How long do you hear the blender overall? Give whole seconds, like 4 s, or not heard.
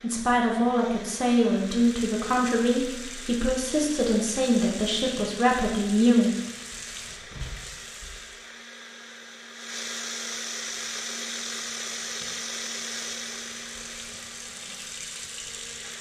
16 s.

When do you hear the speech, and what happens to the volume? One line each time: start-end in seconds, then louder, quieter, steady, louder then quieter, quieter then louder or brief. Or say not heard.
0.0-6.3 steady.